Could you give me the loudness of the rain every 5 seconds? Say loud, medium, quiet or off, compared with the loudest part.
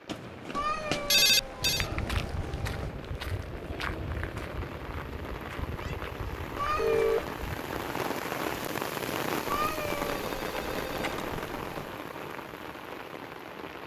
medium, loud, loud.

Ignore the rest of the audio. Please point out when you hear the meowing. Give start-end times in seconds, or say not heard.
0.5-2.9, 6.5-7.3, 9.4-11.9.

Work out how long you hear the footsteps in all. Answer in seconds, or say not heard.
6 s.